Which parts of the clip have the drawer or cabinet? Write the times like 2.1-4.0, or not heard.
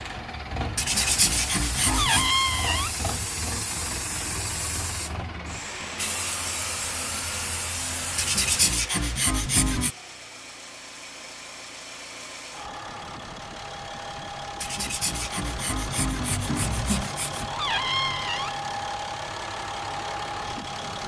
1.9-3.0, 17.5-18.6.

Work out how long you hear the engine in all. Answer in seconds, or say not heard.
21 s.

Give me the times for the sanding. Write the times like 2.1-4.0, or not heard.
0.8-2.3, 8.2-9.9, 14.6-17.5.